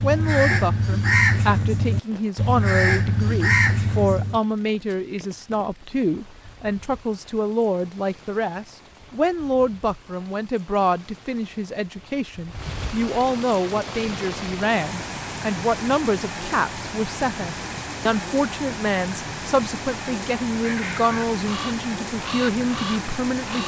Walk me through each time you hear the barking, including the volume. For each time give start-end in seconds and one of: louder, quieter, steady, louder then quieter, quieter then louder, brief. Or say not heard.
not heard.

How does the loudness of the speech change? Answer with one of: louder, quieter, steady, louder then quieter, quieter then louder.
steady.